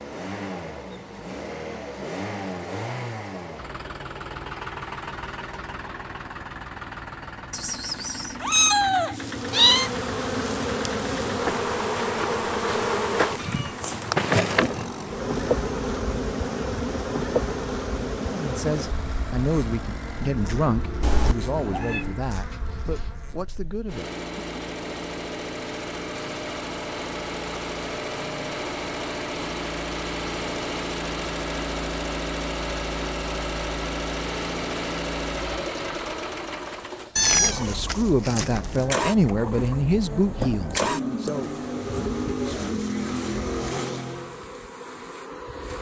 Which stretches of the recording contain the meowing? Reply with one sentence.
You can hear the meowing from 7.5 to 9.9 s, from 21.0 to 22.1 s and from 37.1 to 38.9 s.